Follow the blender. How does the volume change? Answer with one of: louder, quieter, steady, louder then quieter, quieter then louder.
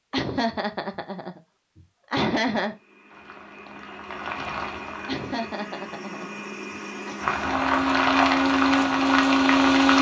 louder.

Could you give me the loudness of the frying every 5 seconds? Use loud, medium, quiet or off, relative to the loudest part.
quiet, loud.